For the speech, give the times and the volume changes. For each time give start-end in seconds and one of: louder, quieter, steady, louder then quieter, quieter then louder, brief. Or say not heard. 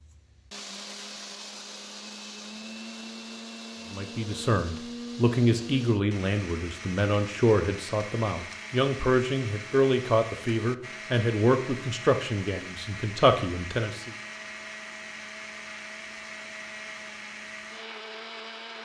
3.9-14.1 steady.